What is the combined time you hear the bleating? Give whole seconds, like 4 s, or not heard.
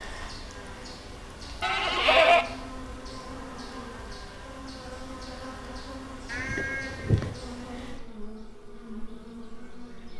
2 s.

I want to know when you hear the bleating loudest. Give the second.
2 s.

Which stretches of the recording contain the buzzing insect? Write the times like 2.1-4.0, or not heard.
0.0-10.1.